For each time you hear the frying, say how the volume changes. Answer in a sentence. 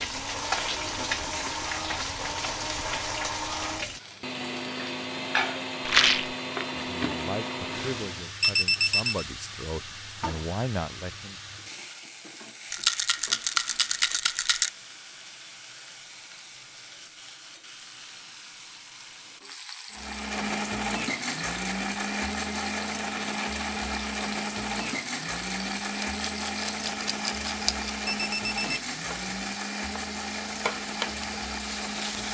The frying can be heard from 0.0 to 32.3 s, getting quieter then louder.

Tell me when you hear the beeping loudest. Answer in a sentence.
The volume of the beeping peaks at 9 seconds.